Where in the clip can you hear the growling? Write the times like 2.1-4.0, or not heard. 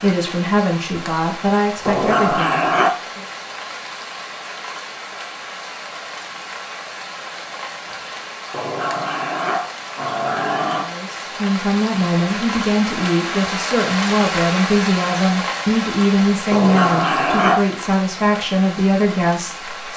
1.9-3.0, 8.5-10.9, 16.5-17.6.